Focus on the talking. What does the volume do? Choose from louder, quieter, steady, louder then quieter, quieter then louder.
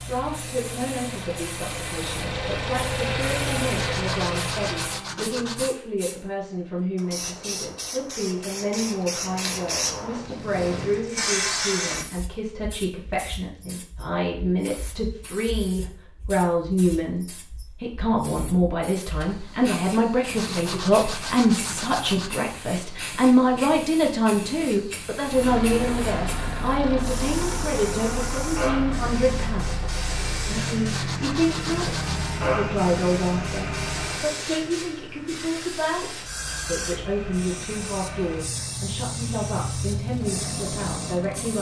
louder then quieter.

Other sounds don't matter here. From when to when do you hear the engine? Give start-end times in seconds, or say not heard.
0.0-5.0, 25.2-34.3, 36.2-41.5.